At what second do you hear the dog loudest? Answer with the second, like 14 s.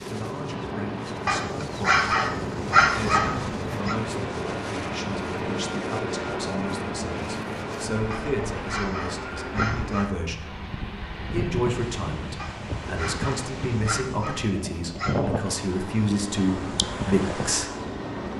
3 s.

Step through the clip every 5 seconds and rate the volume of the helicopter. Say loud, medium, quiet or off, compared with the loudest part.
loud, loud, medium, loud.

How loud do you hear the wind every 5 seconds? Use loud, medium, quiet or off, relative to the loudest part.
loud, medium, loud, loud.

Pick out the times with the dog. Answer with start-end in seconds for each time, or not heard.
1.2-4.0, 8.1-10.2, 12.3-15.3.